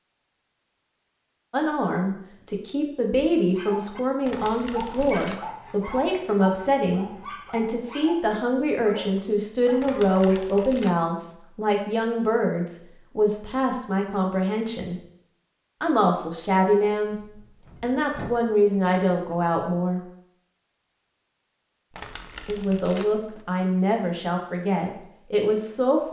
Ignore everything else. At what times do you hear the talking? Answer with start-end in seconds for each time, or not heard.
1.5-15.0, 15.8-17.1, 17.8-20.0, 22.4-26.0.